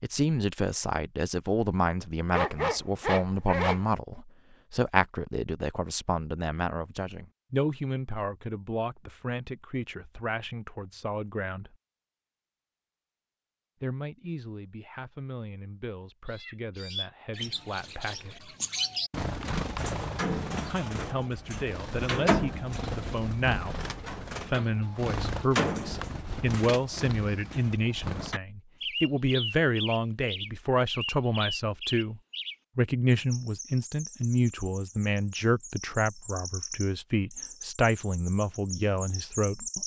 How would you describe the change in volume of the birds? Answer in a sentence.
The volume of the birds goes down.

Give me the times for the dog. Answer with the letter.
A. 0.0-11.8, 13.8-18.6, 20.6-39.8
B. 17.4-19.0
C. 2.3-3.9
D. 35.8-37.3
C.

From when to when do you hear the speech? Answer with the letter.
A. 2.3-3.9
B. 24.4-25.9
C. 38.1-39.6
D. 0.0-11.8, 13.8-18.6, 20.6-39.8
D.